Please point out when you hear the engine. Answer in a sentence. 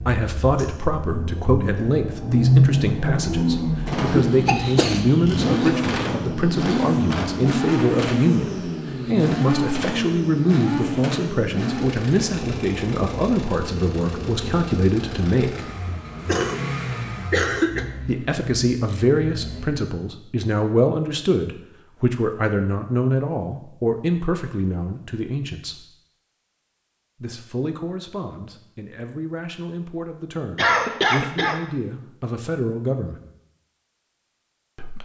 The engine can be heard from 0.0 to 19.9 s.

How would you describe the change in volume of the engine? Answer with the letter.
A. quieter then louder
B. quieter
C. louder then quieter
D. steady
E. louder
B.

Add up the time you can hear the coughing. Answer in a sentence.
You can hear the coughing for 4 seconds altogether.